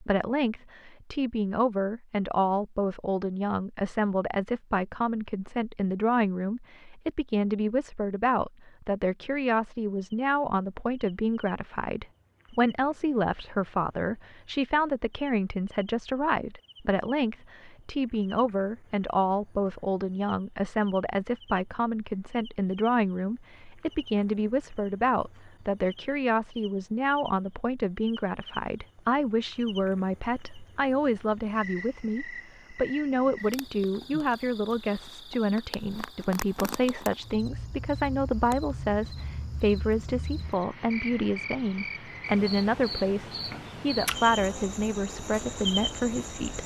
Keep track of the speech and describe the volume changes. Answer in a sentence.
The volume of the speech stays about the same.